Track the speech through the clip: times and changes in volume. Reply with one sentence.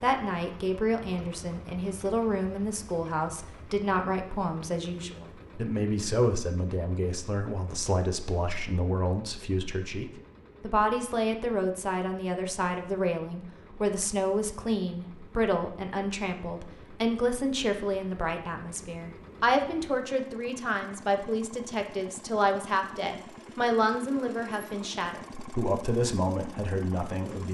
The speech can be heard from 0.0 to 27.4 s, at a steady volume.